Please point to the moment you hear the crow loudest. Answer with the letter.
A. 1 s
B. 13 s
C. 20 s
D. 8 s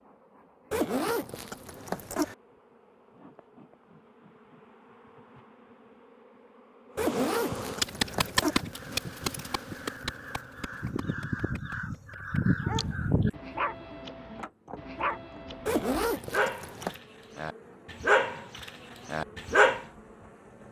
B.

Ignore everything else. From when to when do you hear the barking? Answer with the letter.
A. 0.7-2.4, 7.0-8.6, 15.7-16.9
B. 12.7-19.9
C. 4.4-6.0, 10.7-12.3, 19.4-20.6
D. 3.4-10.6
B.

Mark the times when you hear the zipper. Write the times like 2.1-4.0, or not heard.
0.7-2.4, 7.0-8.6, 15.7-16.9.